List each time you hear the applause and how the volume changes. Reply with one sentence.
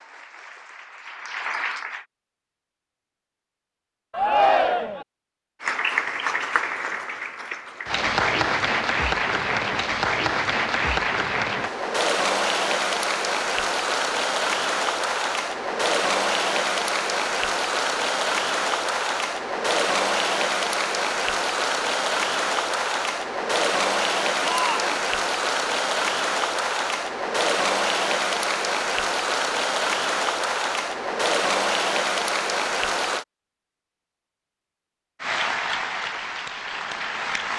You can hear the applause briefly from 0.0 to 2.0 s; from 5.6 to 33.2 s, at a steady volume; and briefly from 35.2 to 37.5 s.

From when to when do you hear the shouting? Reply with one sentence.
You can hear the shouting from 4.1 to 5.0 s and from 24.4 to 24.9 s.